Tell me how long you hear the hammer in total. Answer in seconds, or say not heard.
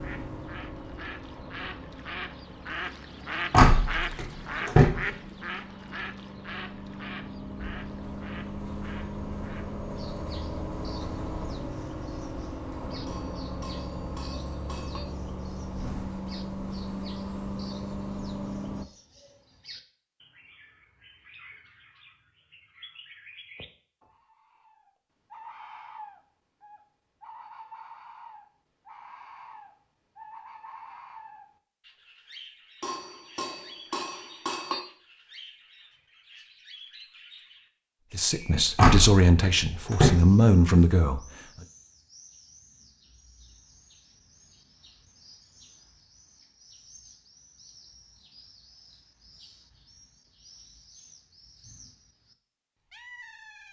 4 s.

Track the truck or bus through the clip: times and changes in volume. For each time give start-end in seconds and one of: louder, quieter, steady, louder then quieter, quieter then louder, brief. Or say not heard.
0.0-18.9 louder.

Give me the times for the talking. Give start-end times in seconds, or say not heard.
38.1-41.2.